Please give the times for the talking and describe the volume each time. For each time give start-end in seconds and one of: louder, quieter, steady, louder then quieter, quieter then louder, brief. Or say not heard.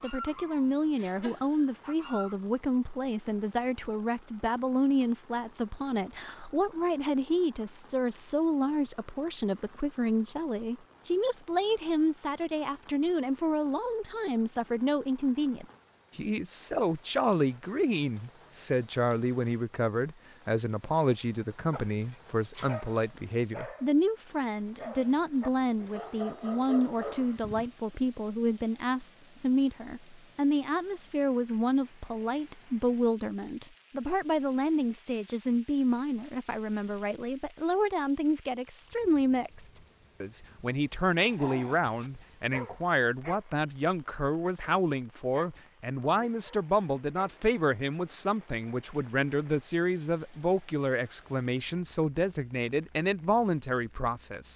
0.0-54.5 steady.